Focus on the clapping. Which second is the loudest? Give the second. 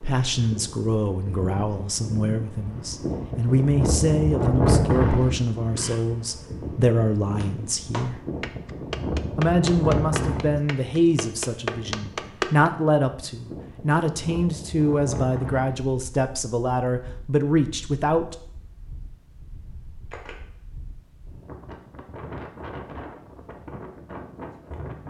12 s.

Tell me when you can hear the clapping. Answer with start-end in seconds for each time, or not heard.
7.4-12.7.